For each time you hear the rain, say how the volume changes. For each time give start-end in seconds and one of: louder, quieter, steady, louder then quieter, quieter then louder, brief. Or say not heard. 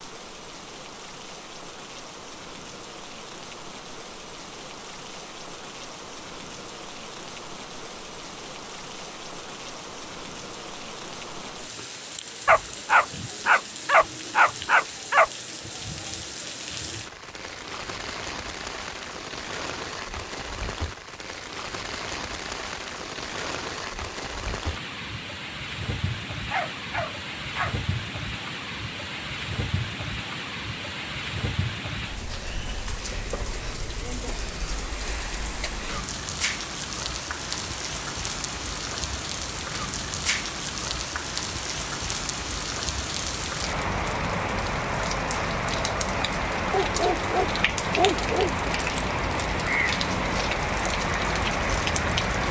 0.0-52.4 louder.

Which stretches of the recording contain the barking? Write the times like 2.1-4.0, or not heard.
12.4-15.3, 26.5-27.8, 46.8-48.6.